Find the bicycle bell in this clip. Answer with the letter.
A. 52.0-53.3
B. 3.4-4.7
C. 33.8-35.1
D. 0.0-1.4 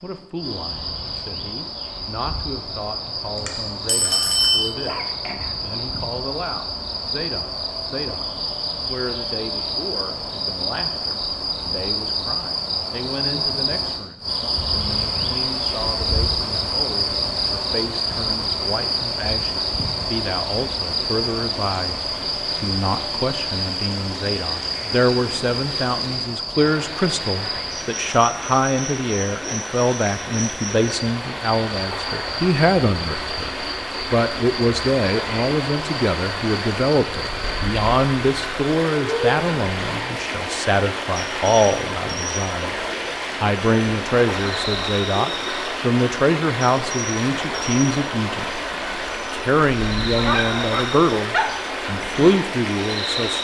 B.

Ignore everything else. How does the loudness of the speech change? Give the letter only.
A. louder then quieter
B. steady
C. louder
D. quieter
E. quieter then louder
C.